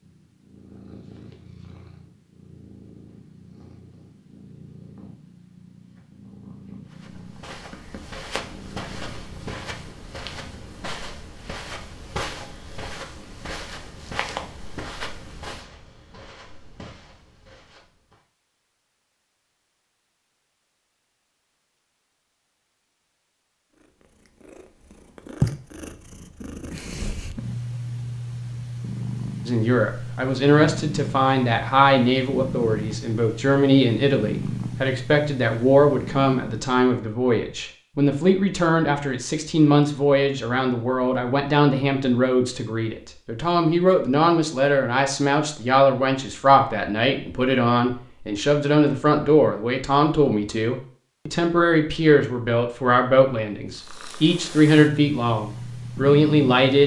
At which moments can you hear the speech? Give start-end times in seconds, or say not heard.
29.4-56.8.